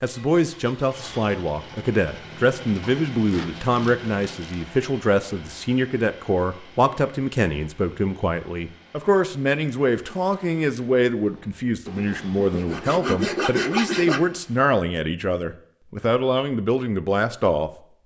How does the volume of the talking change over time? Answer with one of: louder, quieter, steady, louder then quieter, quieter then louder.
steady.